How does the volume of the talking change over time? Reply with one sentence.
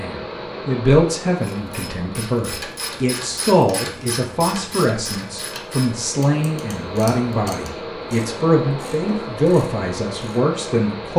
The volume of the talking stays about the same.